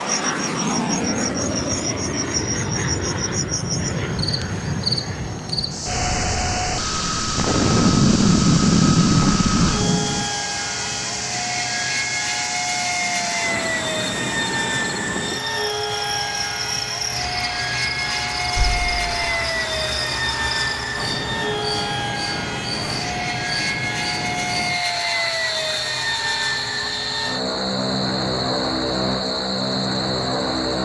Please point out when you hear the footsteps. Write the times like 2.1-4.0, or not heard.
not heard.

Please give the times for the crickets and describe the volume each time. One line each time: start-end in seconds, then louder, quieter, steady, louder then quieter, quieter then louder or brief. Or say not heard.
0.0-30.8 steady.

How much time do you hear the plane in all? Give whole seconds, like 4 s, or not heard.
31 s.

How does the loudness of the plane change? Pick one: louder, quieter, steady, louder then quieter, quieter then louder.
steady.